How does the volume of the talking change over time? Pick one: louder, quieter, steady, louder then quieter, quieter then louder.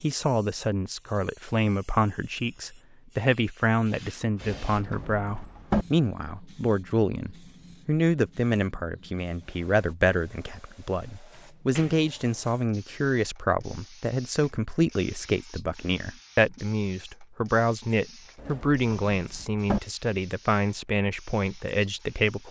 steady.